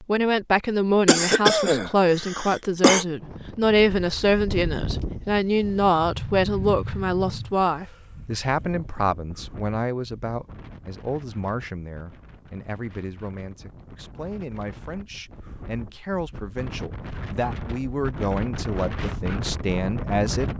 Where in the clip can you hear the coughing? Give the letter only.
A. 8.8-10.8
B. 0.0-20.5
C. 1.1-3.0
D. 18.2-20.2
C.